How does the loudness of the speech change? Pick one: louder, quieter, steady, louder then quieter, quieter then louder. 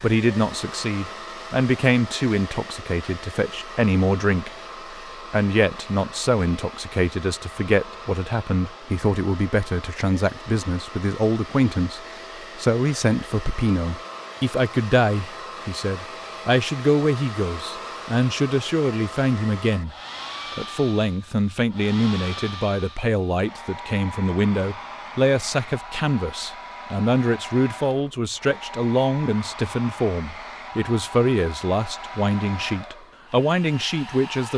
steady.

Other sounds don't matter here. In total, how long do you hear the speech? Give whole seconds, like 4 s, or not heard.
33 s.